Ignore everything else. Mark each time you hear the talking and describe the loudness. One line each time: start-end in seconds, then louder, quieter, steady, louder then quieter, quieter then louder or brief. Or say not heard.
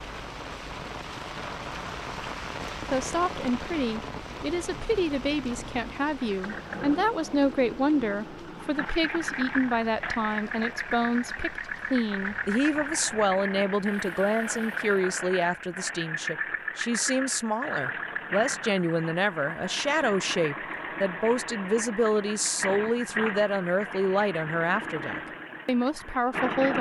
2.9-26.7 steady.